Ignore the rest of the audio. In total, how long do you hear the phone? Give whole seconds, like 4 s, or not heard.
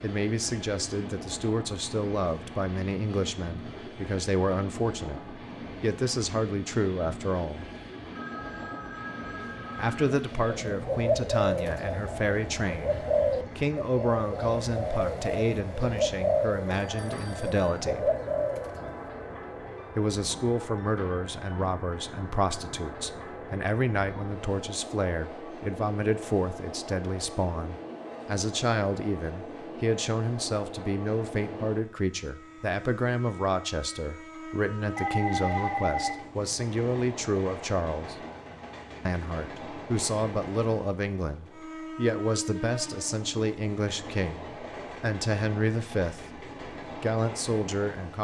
4 s.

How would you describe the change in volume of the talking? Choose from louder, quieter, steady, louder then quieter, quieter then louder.
steady.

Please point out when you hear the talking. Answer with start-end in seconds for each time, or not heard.
0.0-7.7, 9.8-18.1, 19.9-38.2, 39.0-48.1.